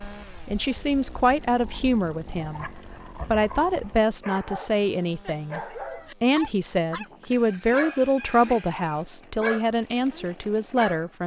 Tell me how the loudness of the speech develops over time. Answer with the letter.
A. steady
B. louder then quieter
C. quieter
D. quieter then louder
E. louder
A.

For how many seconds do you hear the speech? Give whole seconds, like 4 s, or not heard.
10 s.